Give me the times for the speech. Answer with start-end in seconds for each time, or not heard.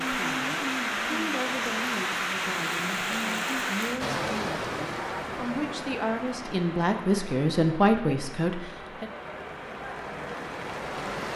0.1-9.1.